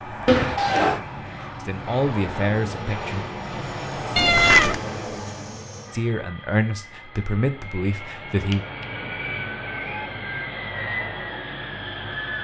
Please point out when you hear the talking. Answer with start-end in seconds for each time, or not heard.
1.6-3.2, 5.9-8.7.